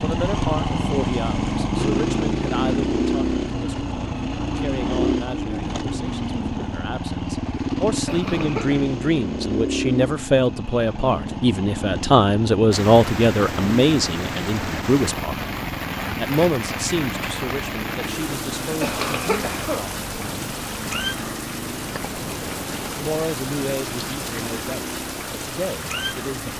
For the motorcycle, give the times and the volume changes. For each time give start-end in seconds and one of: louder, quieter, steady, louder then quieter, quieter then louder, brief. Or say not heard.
0.0-26.5 quieter.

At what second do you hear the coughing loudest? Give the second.
19 s.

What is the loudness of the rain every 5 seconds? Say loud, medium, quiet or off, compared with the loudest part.
off, off, loud, loud, loud, loud.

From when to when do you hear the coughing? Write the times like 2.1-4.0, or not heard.
8.1-8.8, 18.8-20.4.